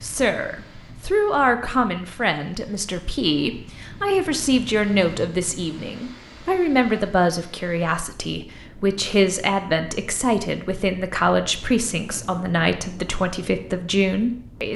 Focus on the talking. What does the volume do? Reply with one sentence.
The volume of the talking stays about the same.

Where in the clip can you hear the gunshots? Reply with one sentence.
The gunshots can't be heard in this clip.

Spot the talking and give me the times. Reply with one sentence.
The talking can be heard from 0.0 to 14.7 s.